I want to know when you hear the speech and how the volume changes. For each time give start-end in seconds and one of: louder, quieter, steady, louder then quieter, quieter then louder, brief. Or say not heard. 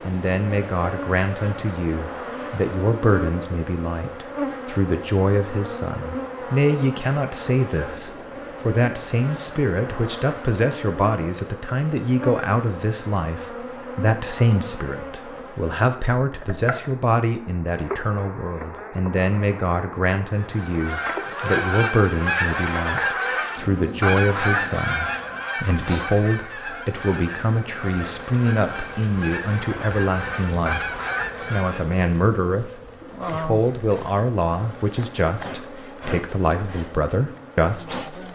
0.0-38.0 steady.